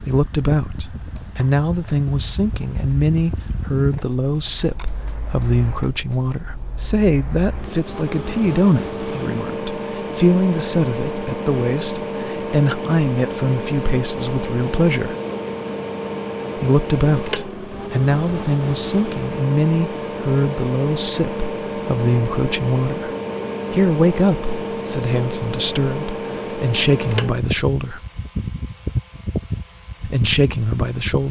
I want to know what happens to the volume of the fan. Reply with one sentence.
The volume of the fan goes up.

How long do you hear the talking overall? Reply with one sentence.
You can hear the talking for 27 seconds altogether.